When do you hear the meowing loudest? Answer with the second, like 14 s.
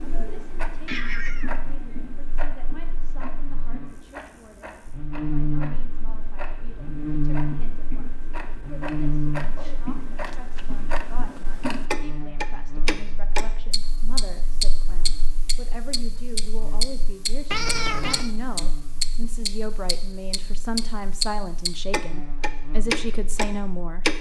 18 s.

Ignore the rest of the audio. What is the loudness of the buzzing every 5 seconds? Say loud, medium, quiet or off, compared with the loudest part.
quiet, loud, quiet, quiet, quiet.